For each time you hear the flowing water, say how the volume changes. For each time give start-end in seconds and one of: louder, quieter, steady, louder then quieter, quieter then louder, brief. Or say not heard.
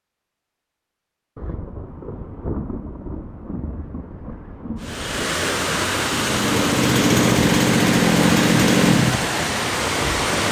4.8-10.4 steady.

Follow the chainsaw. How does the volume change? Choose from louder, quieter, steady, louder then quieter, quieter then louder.
quieter.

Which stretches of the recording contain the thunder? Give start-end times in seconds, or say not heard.
1.4-5.2.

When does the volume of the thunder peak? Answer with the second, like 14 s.
3 s.